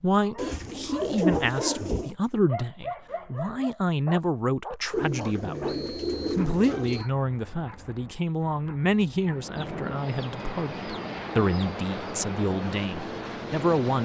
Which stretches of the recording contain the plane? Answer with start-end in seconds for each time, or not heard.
9.2-13.9.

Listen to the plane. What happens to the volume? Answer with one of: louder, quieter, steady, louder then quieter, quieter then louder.
steady.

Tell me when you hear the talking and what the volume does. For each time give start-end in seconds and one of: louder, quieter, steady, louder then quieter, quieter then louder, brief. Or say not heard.
0.0-13.9 steady.